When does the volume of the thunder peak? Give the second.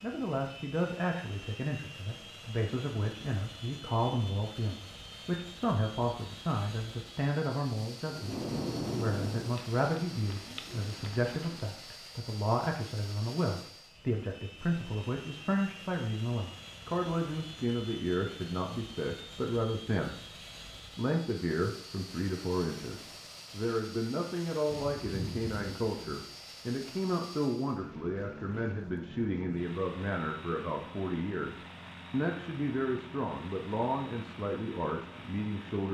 9 s.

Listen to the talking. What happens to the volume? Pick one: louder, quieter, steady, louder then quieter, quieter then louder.
steady.